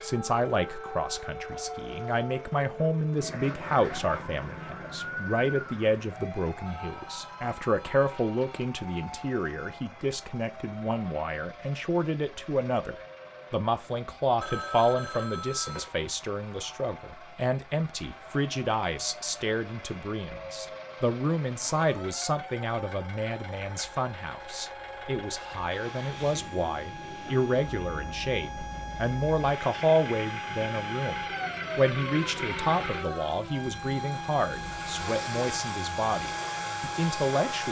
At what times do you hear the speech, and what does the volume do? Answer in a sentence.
You can hear the speech from 0.0 to 37.6 s, at a steady volume.